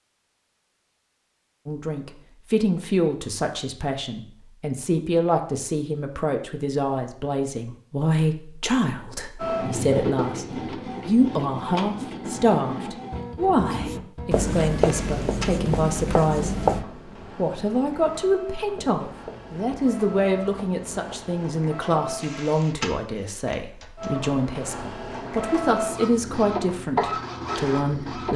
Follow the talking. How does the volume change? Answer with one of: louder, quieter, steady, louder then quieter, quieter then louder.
steady.